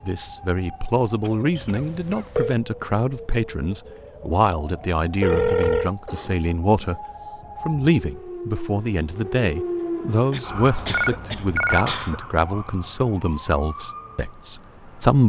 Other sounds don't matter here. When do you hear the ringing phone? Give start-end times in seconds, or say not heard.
1.6-2.5, 5.2-5.9, 10.9-11.9.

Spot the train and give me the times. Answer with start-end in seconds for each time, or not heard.
not heard.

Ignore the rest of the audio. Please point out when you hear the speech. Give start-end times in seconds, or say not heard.
0.1-7.0, 7.7-15.2.